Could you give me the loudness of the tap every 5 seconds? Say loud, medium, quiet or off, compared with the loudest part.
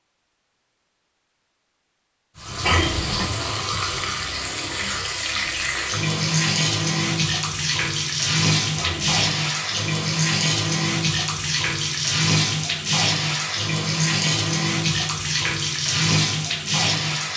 medium, loud, loud, loud.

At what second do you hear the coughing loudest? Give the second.
3 s.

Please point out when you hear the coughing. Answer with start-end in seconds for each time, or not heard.
2.6-3.4, 8.8-9.2.